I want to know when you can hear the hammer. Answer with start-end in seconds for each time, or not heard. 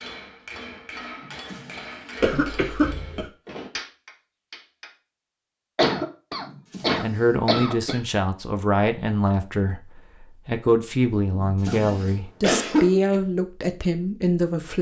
0.0-5.0.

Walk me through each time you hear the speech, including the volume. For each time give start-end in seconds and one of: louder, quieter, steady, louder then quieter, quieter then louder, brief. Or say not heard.
7.0-14.7 steady.